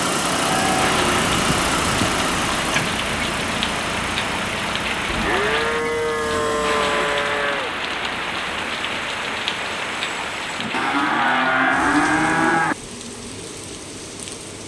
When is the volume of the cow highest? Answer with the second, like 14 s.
12 s.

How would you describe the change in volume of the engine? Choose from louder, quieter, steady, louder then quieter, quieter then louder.
quieter.